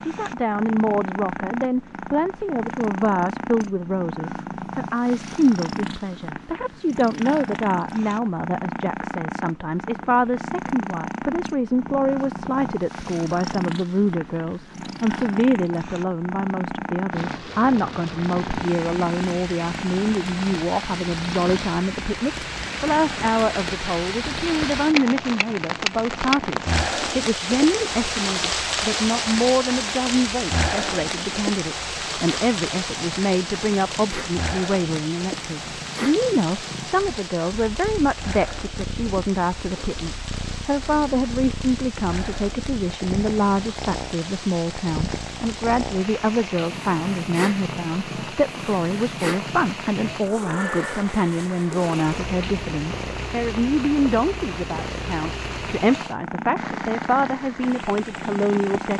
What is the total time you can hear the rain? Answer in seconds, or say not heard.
42 s.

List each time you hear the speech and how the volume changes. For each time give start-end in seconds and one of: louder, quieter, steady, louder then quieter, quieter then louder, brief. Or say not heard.
0.0-58.9 steady.